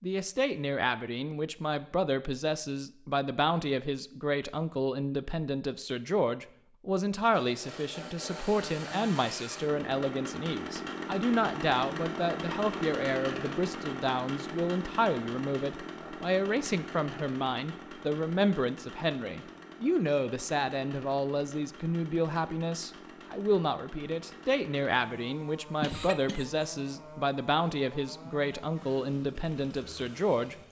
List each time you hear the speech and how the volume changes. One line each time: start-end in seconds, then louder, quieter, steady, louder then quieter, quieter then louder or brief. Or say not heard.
0.0-30.6 steady.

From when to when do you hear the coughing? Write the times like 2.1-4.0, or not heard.
25.8-26.7.